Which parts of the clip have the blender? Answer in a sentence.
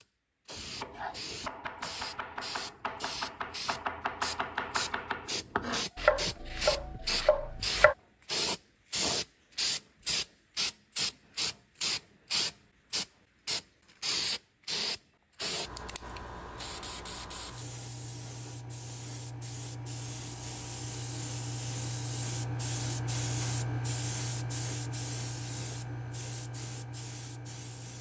You can't hear the blender here.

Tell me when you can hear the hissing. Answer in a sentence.
The hissing can be heard from 0.0 to 27.9 s.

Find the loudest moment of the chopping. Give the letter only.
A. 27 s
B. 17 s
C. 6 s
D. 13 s
C.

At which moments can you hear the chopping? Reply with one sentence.
You can hear the chopping from 0.6 to 8.0 s.